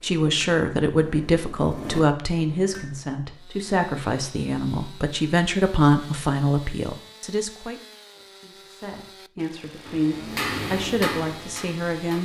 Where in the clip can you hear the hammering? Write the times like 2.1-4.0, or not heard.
0.0-3.0, 9.8-12.2.